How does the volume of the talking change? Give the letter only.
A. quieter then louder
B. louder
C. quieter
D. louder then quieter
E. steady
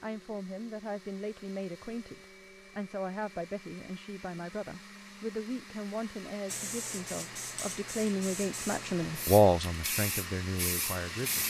B.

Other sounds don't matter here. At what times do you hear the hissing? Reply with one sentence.
The hissing can be heard from 6.5 to 11.4 s.